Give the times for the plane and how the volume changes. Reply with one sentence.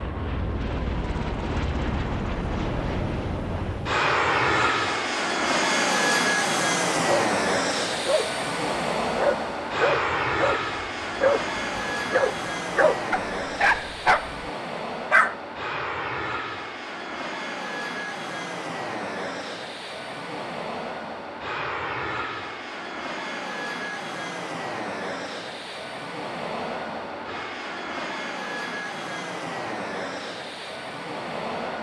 The plane can be heard from 0.0 to 31.7 s, getting quieter.